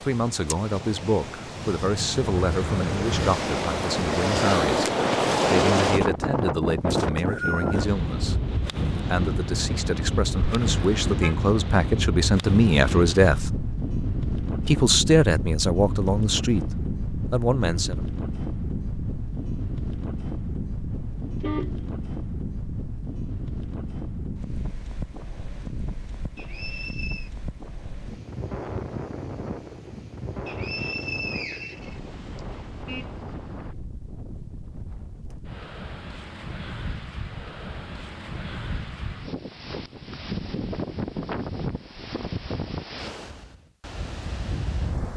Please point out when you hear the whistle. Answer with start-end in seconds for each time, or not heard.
6.9-7.8, 26.4-27.3, 30.4-32.4.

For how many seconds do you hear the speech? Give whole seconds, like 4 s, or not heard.
17 s.